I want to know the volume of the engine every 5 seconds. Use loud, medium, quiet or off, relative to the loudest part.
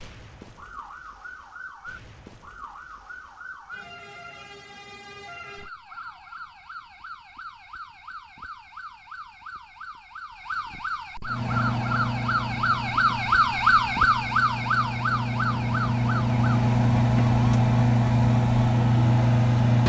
off, off, medium, loud.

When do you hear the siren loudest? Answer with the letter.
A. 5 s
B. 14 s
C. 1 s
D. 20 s
B.